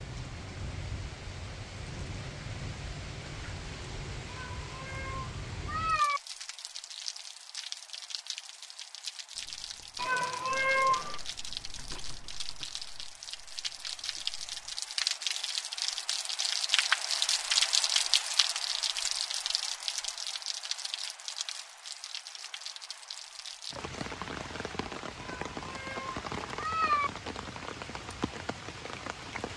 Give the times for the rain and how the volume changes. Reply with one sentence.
You can hear the rain from 0.0 to 29.5 s, getting louder then quieter.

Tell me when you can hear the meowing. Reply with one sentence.
The meowing can be heard from 4.3 to 6.2 s, from 9.9 to 11.2 s and from 25.2 to 27.1 s.